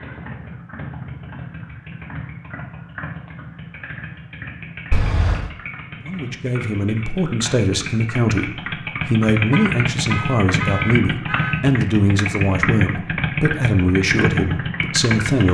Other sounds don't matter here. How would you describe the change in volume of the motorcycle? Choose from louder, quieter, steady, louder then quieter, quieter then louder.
louder.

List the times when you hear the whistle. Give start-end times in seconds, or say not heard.
not heard.